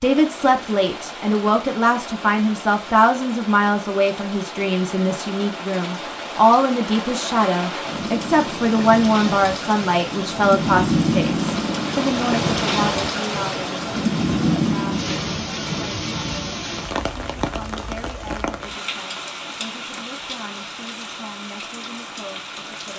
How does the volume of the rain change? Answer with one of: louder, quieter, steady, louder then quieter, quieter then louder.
louder then quieter.